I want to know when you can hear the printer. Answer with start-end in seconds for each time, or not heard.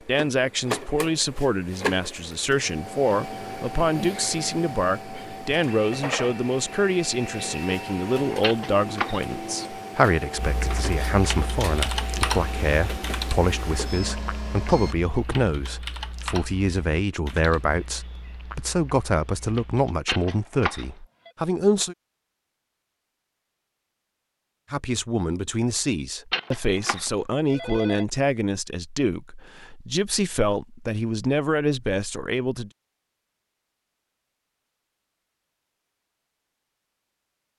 0.0-14.9.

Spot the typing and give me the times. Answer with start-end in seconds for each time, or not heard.
10.3-19.9.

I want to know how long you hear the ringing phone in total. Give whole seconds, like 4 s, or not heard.
4 s.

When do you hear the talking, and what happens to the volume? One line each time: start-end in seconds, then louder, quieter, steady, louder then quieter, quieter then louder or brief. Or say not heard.
0.1-21.9 steady
24.7-32.7 steady.